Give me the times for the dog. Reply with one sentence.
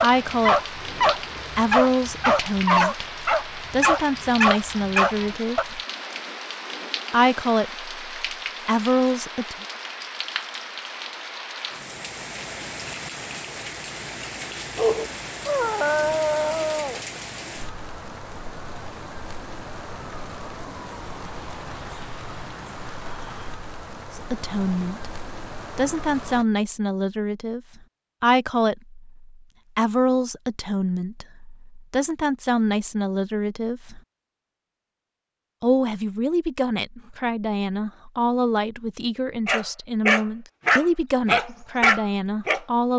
The dog can be heard from 0.0 to 5.7 s, from 14.8 to 17.0 s and from 39.5 to 42.9 s.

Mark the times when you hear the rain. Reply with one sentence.
The rain can be heard from 0.0 to 26.4 s.